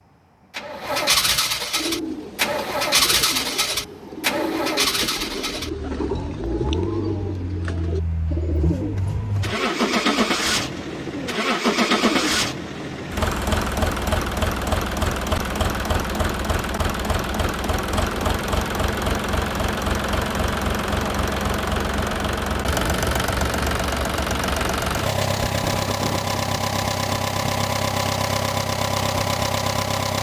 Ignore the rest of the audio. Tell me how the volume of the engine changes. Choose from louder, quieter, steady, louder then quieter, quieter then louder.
steady.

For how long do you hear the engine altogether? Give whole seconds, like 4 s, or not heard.
30 s.